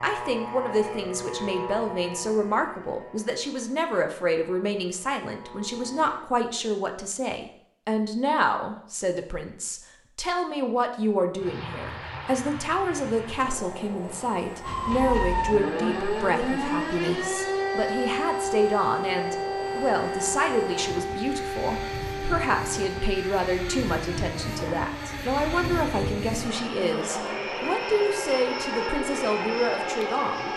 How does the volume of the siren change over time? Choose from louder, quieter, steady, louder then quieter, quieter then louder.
quieter.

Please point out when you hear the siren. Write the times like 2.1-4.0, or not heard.
14.6-30.5.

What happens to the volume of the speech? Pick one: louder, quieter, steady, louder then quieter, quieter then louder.
steady.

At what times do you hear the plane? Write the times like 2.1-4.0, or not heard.
0.0-6.2, 11.3-30.5.